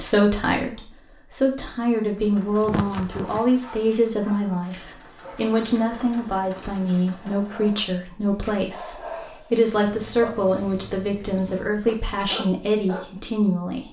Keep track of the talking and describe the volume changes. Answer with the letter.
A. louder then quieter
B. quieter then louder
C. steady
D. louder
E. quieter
C.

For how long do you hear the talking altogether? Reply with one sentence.
The talking can be heard for 14 seconds in total.